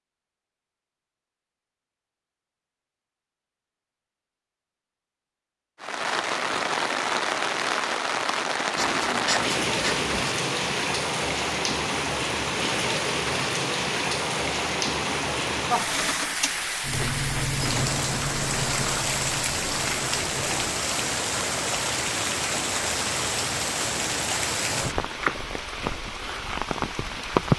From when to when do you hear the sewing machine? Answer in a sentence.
You can hear the sewing machine from 15.8 to 21.8 s.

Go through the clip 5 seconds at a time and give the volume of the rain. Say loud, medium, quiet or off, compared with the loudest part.
off, loud, loud, loud, loud, loud.